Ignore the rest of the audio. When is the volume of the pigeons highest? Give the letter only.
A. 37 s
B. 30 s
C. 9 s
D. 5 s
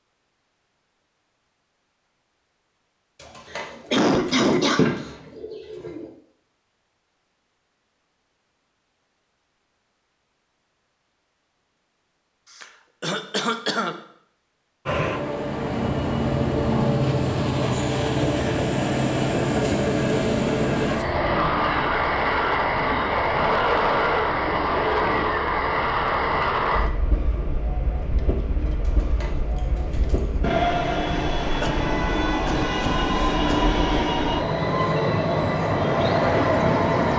D.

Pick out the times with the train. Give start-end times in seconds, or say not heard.
14.8-37.1.